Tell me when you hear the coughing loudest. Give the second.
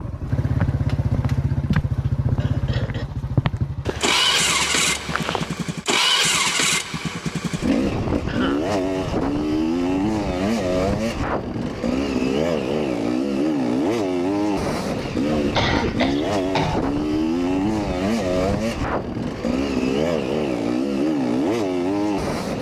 16 s.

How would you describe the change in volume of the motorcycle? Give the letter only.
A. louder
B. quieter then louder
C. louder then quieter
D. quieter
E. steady
E.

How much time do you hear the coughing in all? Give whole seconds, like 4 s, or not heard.
3 s.